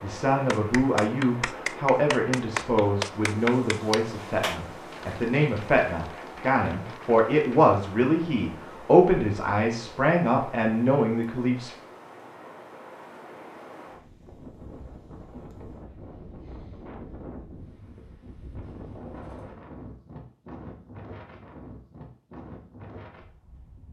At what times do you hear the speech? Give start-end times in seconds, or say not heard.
0.0-11.8.